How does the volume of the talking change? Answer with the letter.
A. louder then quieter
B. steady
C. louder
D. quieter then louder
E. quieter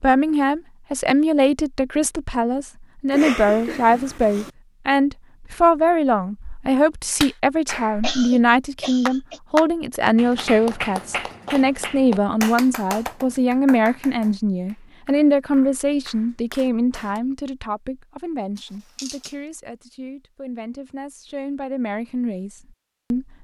E.